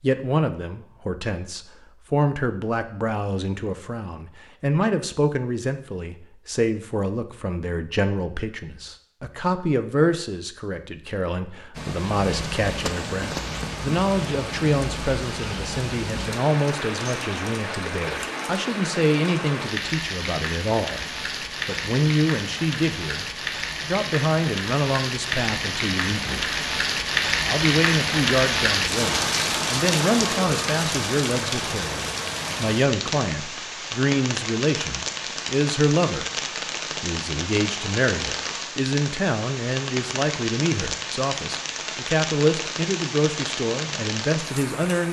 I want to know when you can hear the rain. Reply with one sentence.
You can hear the rain from 11.8 to 45.0 s.